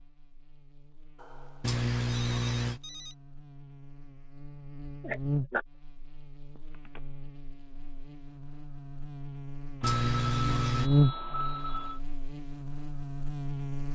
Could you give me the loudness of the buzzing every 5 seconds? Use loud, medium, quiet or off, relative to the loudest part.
quiet, medium, loud.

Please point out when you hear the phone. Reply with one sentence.
You can hear the phone from 1.1 to 3.1 s, from 6.5 to 7.0 s and from 9.8 to 12.0 s.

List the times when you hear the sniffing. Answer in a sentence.
You can hear the sniffing from 1.6 to 2.8 s, from 5.0 to 5.7 s and from 9.8 to 10.9 s.